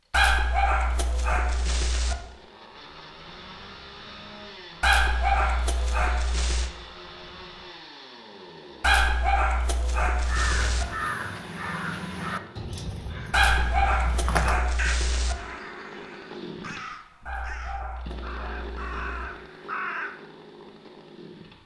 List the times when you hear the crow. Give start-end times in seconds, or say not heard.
10.1-20.1.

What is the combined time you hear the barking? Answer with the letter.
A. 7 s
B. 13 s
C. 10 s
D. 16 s
C.